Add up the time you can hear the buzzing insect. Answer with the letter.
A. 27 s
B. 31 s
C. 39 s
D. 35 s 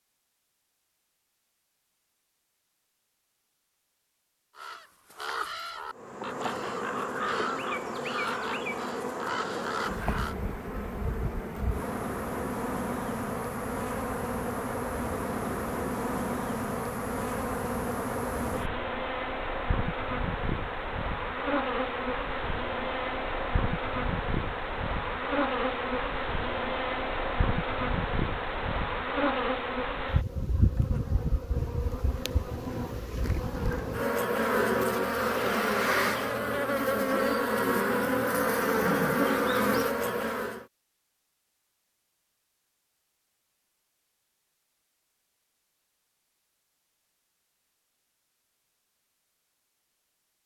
D.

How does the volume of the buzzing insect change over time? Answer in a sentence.
The volume of the buzzing insect goes up.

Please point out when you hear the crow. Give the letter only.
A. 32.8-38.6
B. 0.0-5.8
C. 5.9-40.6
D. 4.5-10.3
D.